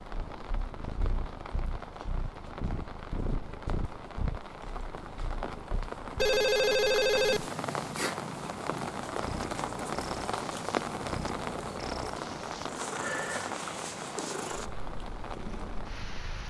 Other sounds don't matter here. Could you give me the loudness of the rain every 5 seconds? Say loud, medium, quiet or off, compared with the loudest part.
medium, loud, loud, medium.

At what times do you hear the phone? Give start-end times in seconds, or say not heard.
6.2-7.5.